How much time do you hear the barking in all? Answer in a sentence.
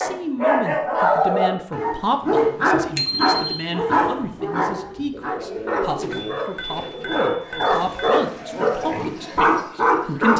You can hear the barking for 10 seconds altogether.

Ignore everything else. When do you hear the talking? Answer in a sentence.
You can hear the talking from 0.0 to 10.3 s.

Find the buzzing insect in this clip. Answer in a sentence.
The buzzing insect can't be heard in this clip.